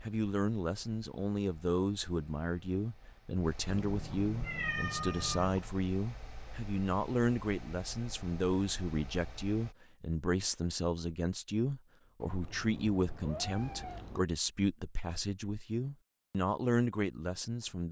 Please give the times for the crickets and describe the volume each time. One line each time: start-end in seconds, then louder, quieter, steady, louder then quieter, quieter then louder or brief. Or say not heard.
not heard.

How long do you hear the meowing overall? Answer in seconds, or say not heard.
4 s.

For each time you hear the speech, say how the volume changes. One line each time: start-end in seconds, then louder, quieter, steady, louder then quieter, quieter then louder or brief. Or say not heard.
0.0-17.8 steady.